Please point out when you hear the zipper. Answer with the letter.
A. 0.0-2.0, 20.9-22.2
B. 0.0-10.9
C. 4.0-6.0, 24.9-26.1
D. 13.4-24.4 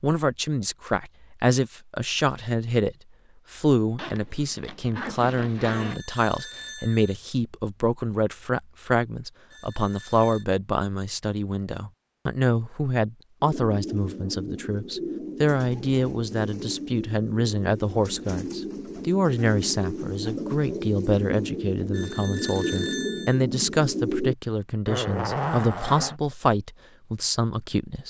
C.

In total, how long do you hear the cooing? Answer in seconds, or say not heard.
11 s.